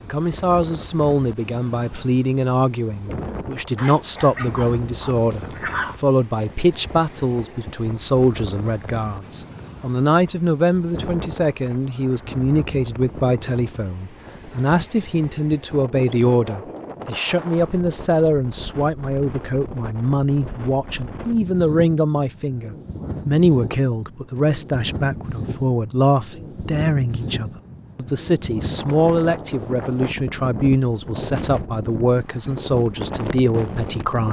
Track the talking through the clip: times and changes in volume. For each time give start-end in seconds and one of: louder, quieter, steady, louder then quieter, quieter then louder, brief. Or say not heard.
0.0-34.2 steady.